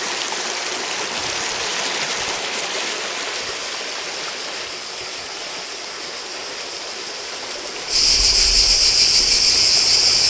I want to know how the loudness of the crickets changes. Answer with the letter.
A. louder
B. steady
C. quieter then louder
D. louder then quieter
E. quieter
A.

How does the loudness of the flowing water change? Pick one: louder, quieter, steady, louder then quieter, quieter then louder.
quieter.